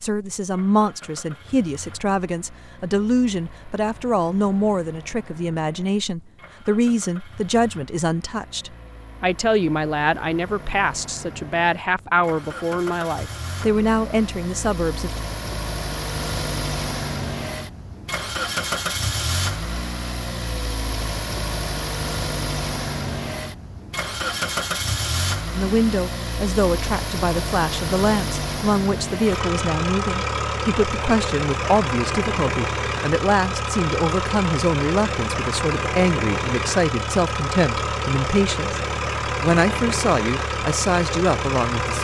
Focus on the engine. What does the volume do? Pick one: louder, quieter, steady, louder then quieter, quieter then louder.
louder.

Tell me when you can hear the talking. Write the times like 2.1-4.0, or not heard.
0.0-15.2, 25.6-38.8, 39.4-42.0.